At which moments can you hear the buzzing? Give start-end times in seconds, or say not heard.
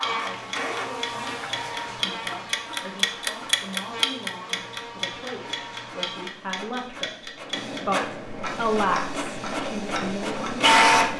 0.0-6.3.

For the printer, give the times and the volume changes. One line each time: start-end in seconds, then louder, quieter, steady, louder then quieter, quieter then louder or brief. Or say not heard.
0.0-11.1 quieter then louder.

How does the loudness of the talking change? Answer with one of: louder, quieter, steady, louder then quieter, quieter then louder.
louder.